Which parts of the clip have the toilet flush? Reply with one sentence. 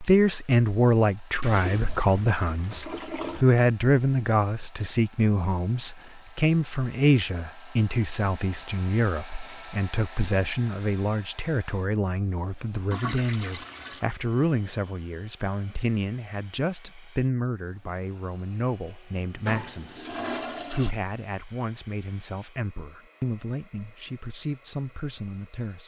The toilet flush can be heard from 1.4 to 3.5 s, from 12.9 to 14.1 s and from 19.2 to 20.9 s.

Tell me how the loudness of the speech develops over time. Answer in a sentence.
The volume of the speech goes down.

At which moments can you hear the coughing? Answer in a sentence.
The coughing can't be heard in this clip.